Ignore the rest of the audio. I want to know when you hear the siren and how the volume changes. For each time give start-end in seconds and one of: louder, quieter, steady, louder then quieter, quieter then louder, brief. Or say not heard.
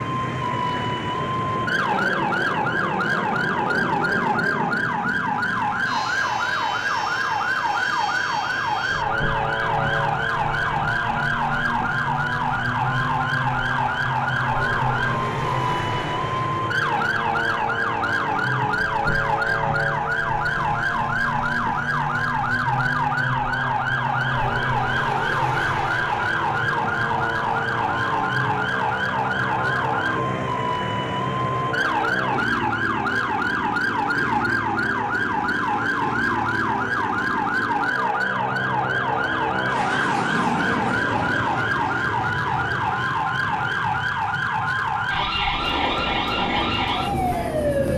0.0-47.9 steady.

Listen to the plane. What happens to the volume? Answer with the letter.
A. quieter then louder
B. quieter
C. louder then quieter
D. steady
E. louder
D.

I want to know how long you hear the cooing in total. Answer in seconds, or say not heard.
not heard.